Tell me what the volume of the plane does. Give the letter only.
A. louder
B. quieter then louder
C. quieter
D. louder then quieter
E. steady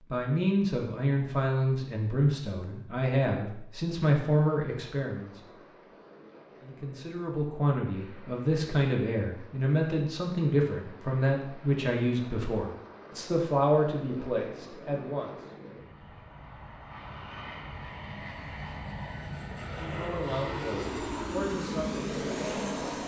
A.